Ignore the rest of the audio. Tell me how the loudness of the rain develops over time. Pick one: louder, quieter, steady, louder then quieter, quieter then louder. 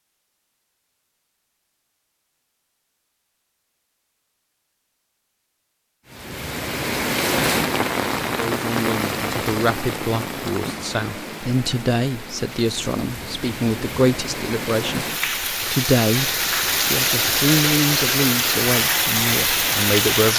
quieter then louder.